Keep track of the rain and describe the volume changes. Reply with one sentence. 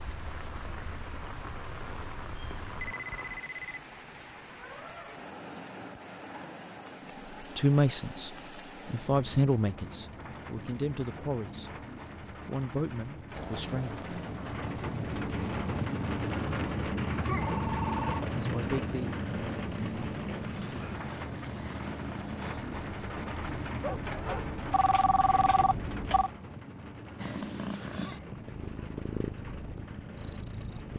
The loudness of the rain goes up, then down.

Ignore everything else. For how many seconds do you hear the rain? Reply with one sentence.
You can hear the rain for 31 seconds altogether.